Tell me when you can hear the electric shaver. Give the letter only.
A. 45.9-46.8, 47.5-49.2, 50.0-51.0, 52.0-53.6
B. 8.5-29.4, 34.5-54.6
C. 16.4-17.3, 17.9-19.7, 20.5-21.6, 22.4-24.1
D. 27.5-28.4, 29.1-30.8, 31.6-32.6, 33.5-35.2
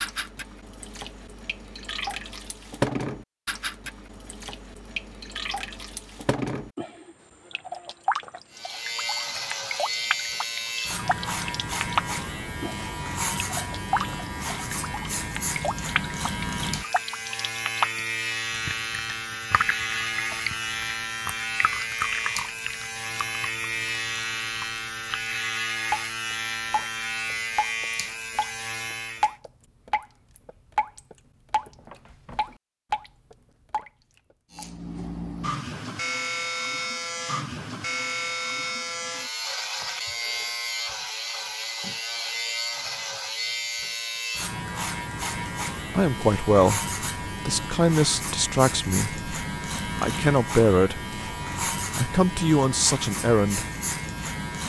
B.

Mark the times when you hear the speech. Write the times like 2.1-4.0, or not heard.
45.9-46.8, 47.5-49.2, 50.0-51.0, 52.0-53.6.